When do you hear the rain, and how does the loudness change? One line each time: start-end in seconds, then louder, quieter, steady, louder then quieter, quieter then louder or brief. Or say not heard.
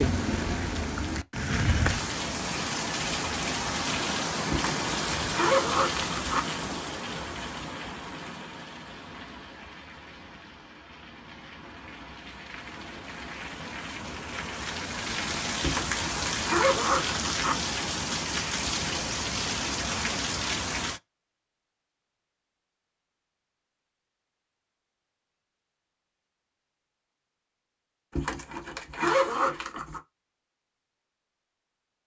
0.0-21.0 quieter then louder.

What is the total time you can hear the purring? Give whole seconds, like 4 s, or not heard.
not heard.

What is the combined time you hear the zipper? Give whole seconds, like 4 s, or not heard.
6 s.